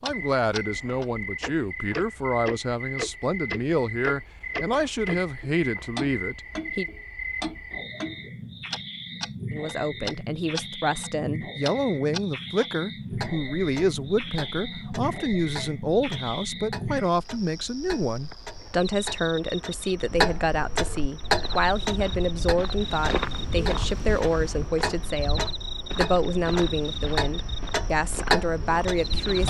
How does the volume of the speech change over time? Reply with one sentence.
The loudness of the speech stays about the same.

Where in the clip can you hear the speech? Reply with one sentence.
You can hear the speech from 0.0 to 6.8 s and from 9.5 to 29.4 s.